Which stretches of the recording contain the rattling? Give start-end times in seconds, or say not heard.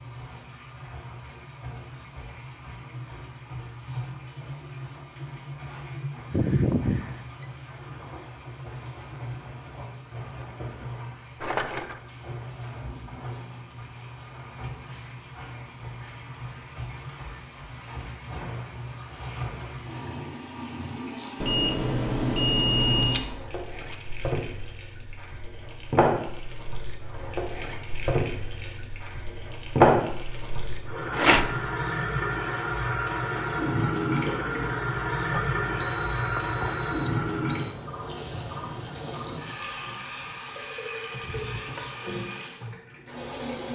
11.4-12.0, 23.0-24.7, 31.1-31.6.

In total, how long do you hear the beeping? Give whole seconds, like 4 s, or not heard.
5 s.